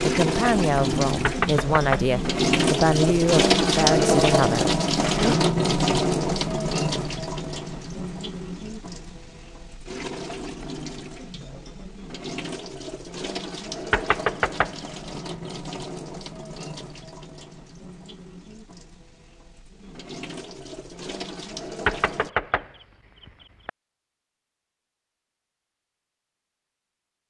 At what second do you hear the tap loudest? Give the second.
4 s.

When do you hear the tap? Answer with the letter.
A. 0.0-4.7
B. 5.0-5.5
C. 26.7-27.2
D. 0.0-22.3
D.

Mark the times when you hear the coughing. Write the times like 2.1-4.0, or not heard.
5.0-5.5.